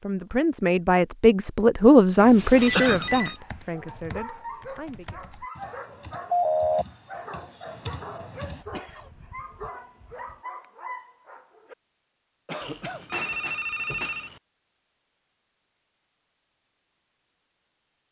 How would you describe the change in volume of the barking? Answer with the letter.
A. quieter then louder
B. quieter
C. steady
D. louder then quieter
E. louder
C.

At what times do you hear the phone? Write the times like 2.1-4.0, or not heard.
2.1-3.4, 6.3-6.8, 12.6-14.4.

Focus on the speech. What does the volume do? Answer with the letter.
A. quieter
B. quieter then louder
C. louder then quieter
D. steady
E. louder
C.